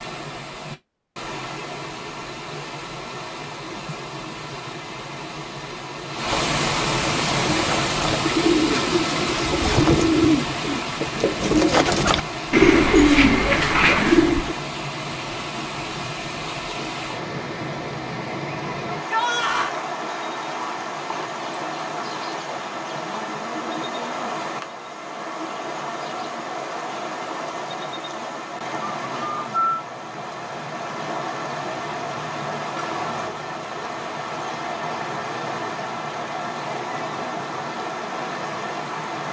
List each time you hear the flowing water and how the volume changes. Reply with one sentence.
The flowing water can be heard from 0.0 to 39.2 s, at a steady volume.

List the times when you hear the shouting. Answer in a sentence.
You can hear the shouting from 18.9 to 19.8 s.